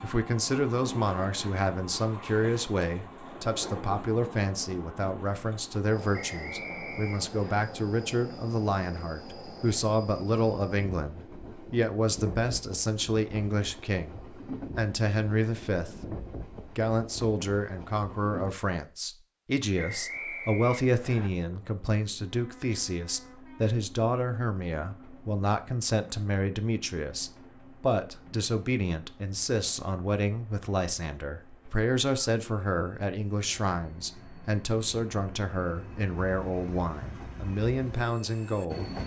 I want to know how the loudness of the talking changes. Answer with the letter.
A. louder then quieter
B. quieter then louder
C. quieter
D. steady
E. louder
D.